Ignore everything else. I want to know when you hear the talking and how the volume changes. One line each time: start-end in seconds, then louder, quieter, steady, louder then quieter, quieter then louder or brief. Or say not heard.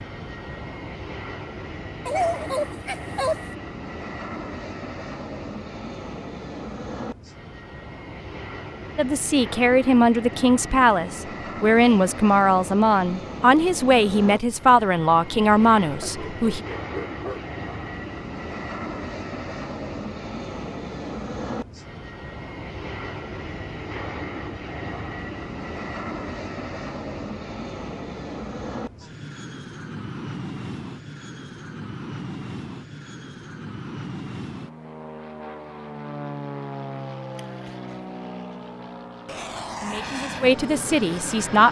8.9-16.6 steady
39.8-41.6 brief.